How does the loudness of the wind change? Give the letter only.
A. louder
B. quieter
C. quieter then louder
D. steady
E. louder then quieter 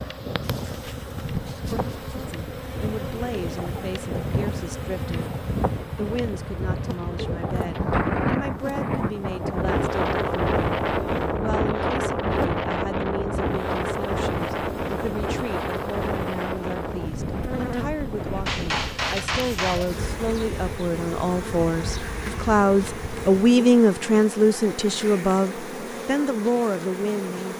E.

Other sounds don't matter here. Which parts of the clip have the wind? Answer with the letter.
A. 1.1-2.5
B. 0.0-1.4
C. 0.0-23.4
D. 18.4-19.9
C.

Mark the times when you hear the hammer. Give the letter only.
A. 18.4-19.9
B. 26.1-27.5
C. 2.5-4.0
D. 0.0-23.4
A.